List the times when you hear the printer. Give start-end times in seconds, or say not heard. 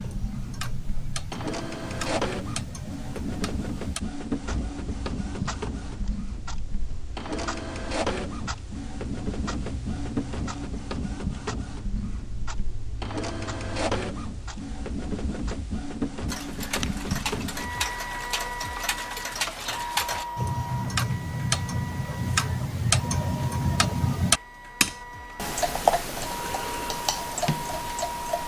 0.0-28.4.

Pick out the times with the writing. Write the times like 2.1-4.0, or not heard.
not heard.